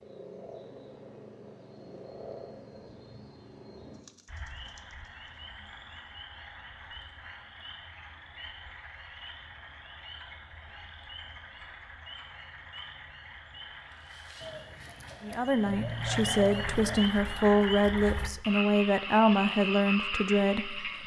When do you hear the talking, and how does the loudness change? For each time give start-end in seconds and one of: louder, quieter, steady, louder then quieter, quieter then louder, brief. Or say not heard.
15.2-21.0 steady.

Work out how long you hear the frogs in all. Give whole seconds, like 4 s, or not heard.
21 s.